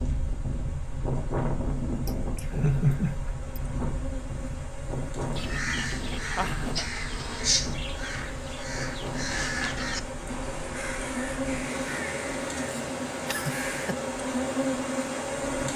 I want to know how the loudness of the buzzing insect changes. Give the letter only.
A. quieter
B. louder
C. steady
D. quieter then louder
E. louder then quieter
B.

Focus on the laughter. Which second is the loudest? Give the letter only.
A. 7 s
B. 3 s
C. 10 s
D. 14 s
B.